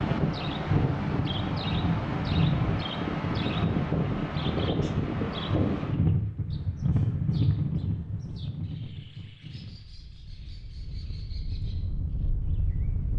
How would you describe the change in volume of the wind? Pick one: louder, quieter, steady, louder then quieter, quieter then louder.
quieter.